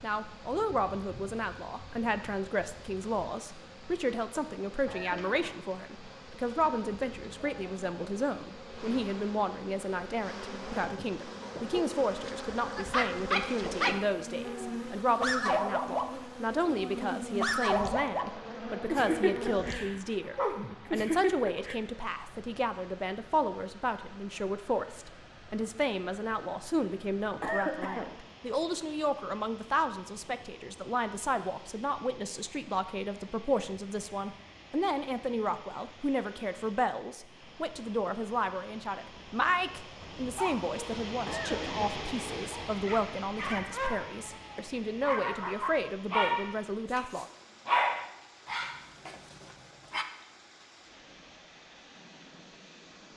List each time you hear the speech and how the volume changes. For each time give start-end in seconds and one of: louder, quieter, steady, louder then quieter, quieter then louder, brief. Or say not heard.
0.0-47.2 steady.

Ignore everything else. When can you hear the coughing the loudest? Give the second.
28 s.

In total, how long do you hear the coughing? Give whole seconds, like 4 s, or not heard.
2 s.